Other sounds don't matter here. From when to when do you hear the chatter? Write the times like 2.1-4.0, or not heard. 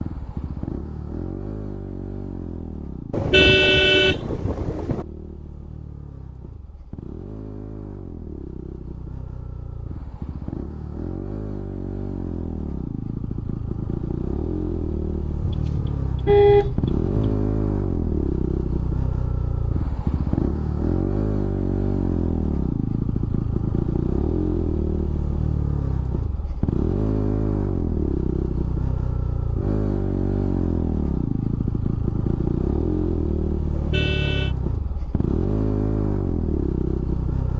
not heard.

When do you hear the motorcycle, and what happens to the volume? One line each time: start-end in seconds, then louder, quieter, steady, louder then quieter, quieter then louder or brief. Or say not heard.
0.0-37.5 louder.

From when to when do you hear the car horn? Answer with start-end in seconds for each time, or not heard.
3.1-5.0, 15.4-17.1, 33.7-34.5.